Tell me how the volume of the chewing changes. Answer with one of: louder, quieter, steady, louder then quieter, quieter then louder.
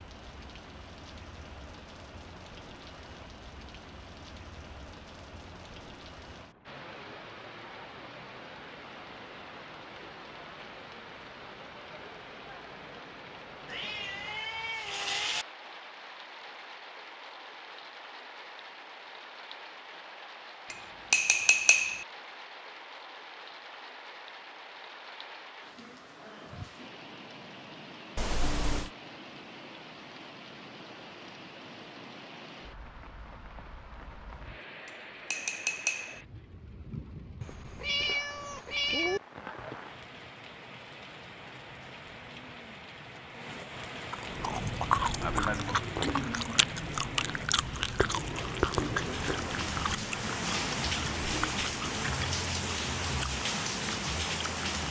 quieter.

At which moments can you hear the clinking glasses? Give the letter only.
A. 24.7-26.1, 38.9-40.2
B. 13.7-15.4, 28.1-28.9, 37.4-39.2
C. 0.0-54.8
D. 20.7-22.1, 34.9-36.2
D.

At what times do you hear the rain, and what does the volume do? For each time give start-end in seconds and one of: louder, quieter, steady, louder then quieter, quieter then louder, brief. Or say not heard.
0.0-54.8 louder.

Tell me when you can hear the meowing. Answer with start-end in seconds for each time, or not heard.
13.7-15.4, 28.1-28.9, 37.4-39.2.